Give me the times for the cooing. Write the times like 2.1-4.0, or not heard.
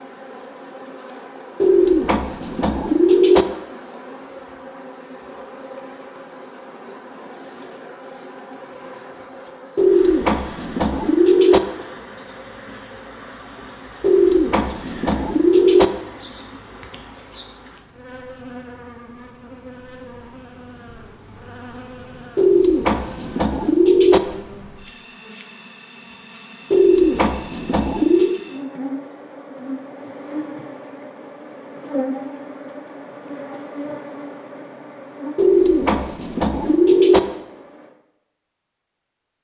1.6-3.5, 9.8-11.6, 14.0-15.9, 22.4-24.2, 26.7-28.4, 35.4-37.2.